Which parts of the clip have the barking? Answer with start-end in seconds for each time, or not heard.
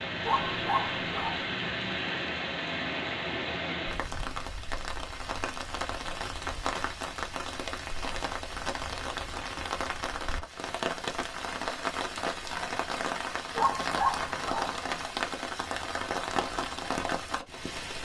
0.2-1.4, 13.6-14.8.